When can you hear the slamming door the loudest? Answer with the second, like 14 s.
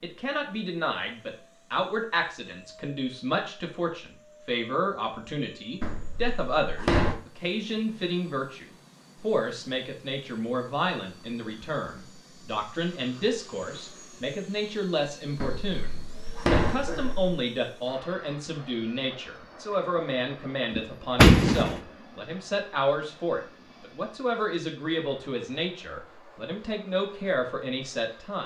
21 s.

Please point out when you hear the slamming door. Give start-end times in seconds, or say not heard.
5.8-7.2, 15.4-17.4, 20.8-21.8.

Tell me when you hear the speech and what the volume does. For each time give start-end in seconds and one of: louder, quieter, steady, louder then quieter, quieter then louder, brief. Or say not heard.
0.0-28.4 steady.